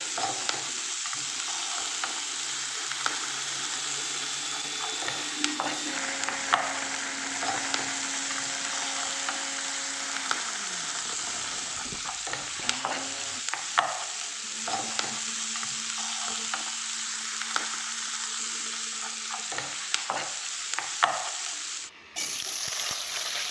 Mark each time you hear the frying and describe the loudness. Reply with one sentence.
The frying can be heard from 0.0 to 23.4 s, at a steady volume.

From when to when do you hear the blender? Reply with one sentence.
You can hear the blender from 0.0 to 23.4 s.